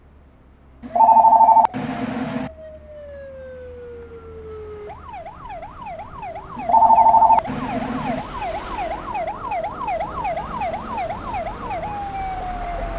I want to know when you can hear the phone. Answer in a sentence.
The phone can be heard from 0.8 to 2.5 s and from 6.5 to 8.2 s.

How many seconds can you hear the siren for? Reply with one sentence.
The siren can be heard for 13 seconds in total.